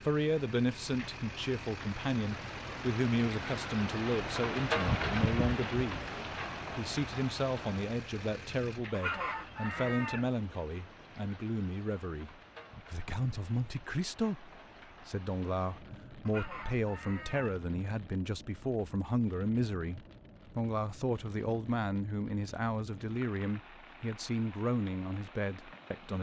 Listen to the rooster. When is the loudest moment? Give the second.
9 s.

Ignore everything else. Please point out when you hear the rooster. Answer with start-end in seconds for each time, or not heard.
8.9-10.3, 16.2-17.6.